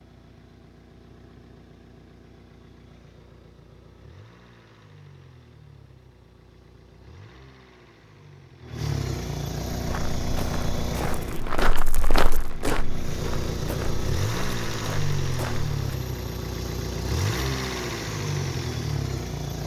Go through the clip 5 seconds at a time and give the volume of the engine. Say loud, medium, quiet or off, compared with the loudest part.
quiet, medium, loud, loud.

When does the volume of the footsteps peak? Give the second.
12 s.